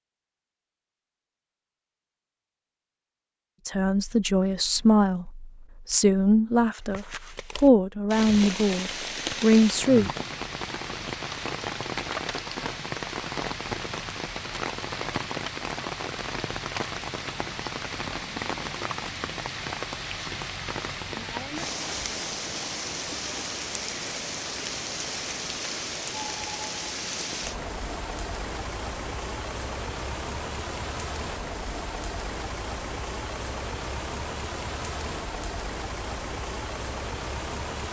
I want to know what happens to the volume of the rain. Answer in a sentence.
The volume of the rain stays about the same.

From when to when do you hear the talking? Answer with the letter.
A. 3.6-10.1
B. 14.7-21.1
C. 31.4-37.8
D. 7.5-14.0
A.